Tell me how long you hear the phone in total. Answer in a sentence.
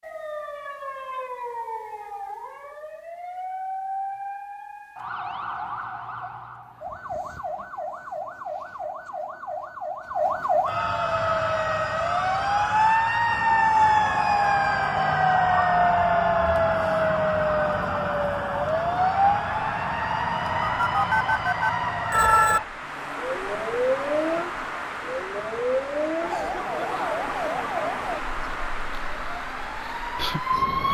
The phone can be heard for 2 seconds in total.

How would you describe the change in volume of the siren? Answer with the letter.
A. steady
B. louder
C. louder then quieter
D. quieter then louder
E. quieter
C.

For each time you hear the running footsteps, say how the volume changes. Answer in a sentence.
You can't hear the running footsteps here.